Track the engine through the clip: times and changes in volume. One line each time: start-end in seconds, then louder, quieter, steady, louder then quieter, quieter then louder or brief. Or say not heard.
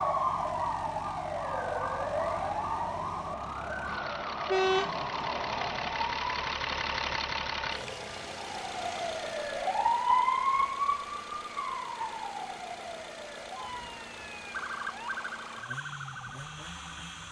0.0-17.2 louder then quieter.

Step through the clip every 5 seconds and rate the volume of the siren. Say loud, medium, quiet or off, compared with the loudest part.
loud, loud, loud, medium.